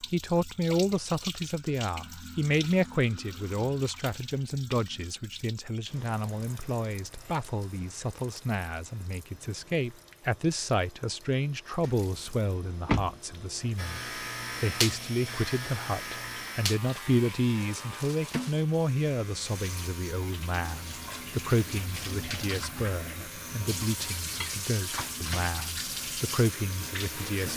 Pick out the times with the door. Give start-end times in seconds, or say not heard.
11.8-13.2.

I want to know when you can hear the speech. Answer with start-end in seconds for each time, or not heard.
0.0-14.0, 14.6-27.5.